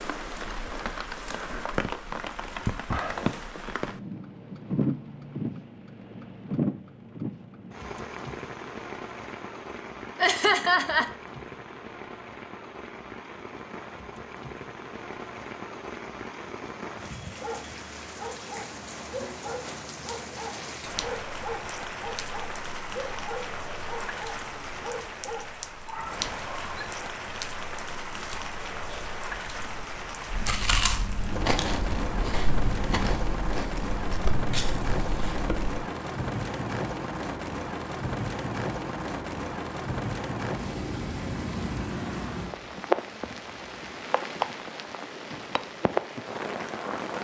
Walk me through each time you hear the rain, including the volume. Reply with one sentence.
You can hear the rain from 0.0 to 47.1 s, getting quieter then louder.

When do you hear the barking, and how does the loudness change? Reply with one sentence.
The barking can be heard from 17.4 to 26.9 s, at a steady volume.